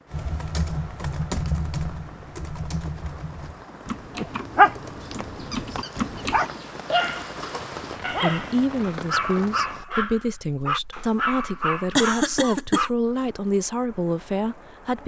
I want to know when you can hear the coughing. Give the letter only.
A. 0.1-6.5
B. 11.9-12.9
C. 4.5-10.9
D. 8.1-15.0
B.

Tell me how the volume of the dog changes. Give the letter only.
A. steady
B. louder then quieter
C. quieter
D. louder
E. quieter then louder
C.